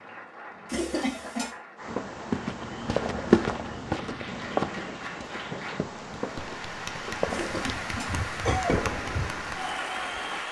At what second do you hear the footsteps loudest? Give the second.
3 s.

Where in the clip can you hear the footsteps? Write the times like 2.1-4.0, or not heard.
1.9-8.9.